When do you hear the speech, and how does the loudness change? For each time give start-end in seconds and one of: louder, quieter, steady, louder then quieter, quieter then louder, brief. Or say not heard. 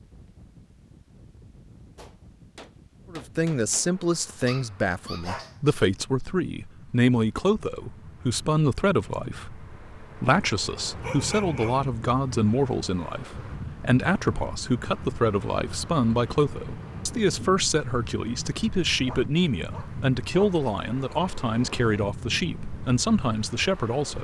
3.1-24.1 steady.